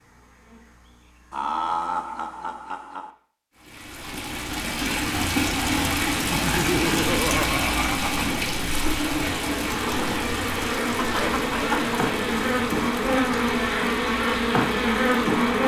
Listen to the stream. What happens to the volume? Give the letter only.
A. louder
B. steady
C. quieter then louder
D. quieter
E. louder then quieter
D.